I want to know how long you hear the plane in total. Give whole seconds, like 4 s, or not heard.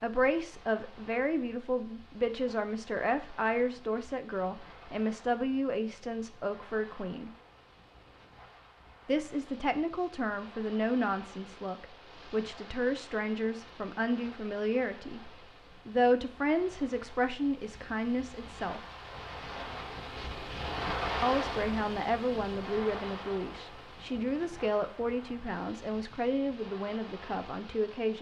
not heard.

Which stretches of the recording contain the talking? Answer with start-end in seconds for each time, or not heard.
0.0-7.3, 9.1-18.8, 21.2-28.1.